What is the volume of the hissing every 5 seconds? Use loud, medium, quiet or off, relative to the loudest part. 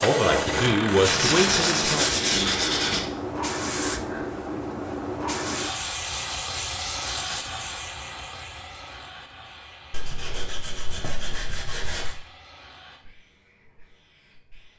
loud, loud, quiet.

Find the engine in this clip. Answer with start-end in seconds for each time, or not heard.
0.0-1.9.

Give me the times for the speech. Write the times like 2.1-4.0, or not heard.
0.0-2.1.